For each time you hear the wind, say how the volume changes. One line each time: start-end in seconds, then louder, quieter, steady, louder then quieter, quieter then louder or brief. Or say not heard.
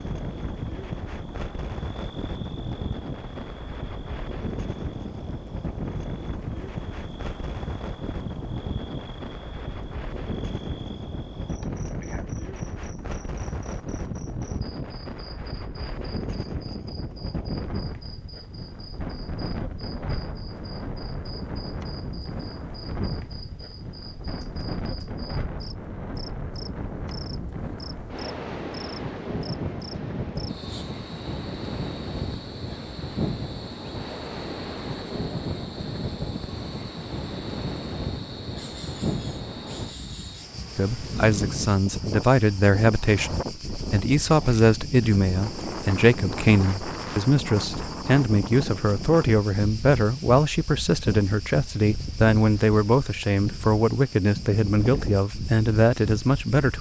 0.0-56.7 steady.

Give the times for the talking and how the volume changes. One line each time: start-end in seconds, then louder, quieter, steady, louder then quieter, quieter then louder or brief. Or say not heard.
40.8-56.7 steady.